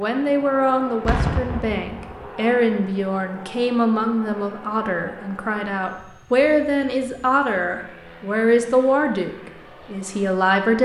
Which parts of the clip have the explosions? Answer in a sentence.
The explosions can be heard from 1.1 to 2.3 s.